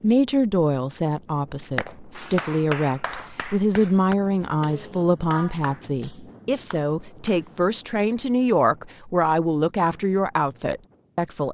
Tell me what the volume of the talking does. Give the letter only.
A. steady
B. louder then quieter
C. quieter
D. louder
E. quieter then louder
A.